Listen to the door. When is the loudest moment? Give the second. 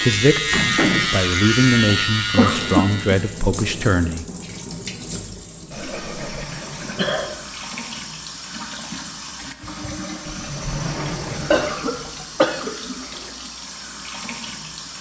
1 s.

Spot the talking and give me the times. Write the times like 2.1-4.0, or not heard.
0.0-4.2.